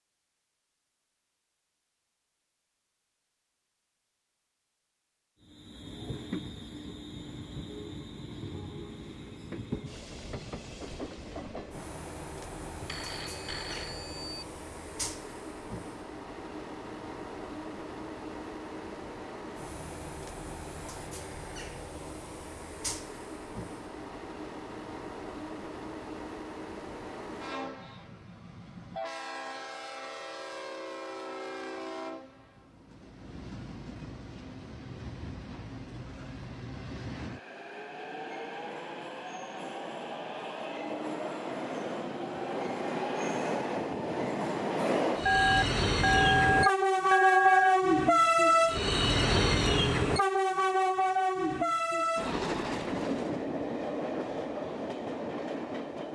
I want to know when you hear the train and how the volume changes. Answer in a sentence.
The train can be heard from 5.4 to 56.1 s, getting louder.